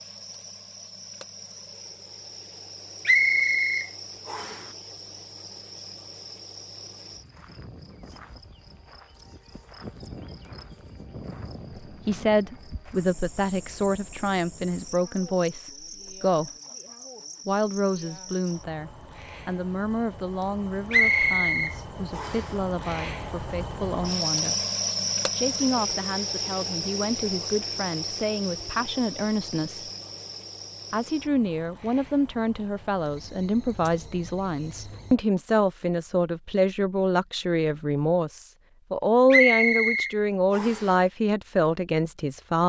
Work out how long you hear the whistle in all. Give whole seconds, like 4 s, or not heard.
5 s.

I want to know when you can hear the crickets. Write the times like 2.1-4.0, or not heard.
0.0-35.2.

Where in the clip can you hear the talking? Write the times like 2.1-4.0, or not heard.
12.1-16.5, 17.4-24.6, 25.3-29.9, 30.9-42.6.